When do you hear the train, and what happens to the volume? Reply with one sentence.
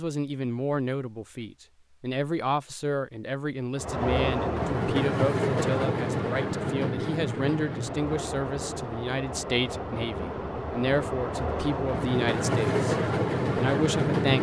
The train can be heard from 3.8 to 14.3 s, getting quieter then louder.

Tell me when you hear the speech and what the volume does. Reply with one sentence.
You can hear the speech from 0.0 to 14.3 s, at a steady volume.